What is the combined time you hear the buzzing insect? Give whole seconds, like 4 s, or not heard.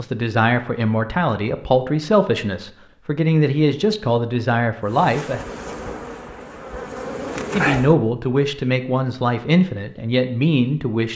3 s.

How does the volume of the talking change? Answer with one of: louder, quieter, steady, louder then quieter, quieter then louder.
steady.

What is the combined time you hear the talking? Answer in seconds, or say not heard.
9 s.